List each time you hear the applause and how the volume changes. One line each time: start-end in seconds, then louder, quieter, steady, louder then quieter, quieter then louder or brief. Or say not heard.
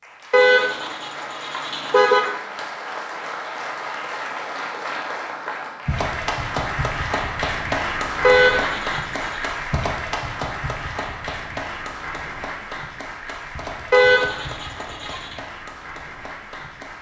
0.0-16.9 louder then quieter.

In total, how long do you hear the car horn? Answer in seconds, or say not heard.
5 s.